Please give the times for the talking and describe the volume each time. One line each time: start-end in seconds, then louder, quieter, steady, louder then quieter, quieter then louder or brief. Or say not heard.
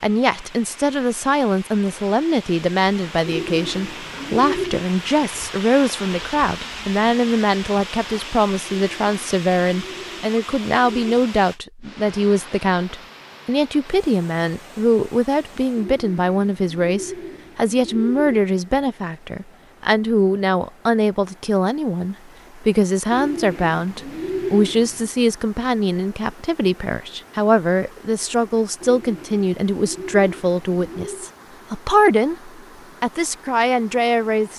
0.0-34.5 steady.